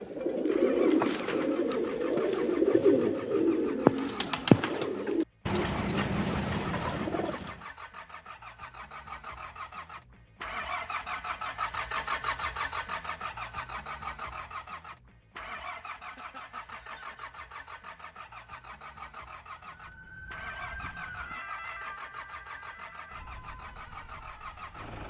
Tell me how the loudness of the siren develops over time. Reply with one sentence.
The loudness of the siren goes down.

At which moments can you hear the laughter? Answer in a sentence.
You can hear the laughter from 15.9 to 17.3 s.